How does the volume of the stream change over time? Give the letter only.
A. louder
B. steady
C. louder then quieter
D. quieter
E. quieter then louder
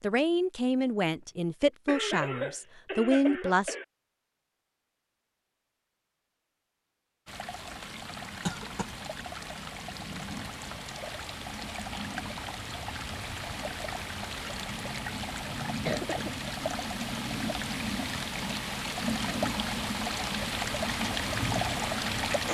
A.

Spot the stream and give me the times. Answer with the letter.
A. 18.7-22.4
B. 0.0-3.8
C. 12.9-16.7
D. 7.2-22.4
D.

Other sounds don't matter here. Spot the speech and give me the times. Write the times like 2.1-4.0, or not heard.
0.0-3.8.